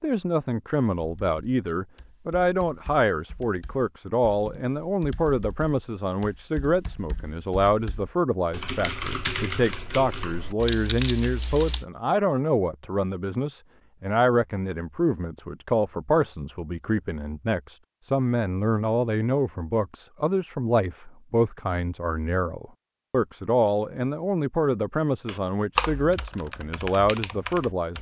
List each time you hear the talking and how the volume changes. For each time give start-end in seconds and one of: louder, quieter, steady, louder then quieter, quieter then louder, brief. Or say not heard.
0.0-27.9 steady.